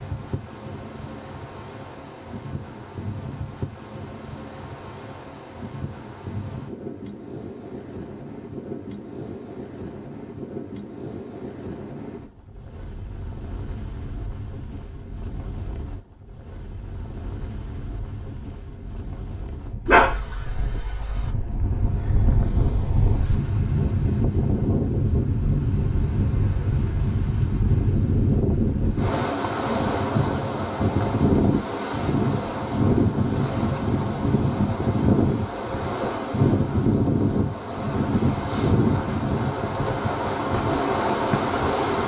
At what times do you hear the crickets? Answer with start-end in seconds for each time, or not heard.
not heard.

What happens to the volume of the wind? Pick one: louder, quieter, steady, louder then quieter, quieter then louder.
louder.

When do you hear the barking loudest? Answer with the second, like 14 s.
20 s.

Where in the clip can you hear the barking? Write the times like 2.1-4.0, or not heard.
19.9-21.3.